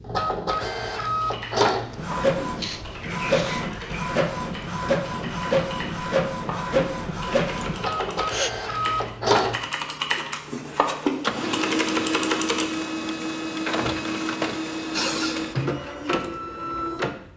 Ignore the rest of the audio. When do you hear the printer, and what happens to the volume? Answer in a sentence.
You can hear the printer from 0.0 to 17.3 s, at a steady volume.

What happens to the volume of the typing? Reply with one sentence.
The volume of the typing goes up.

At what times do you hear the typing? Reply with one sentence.
The typing can be heard from 1.2 to 12.7 s.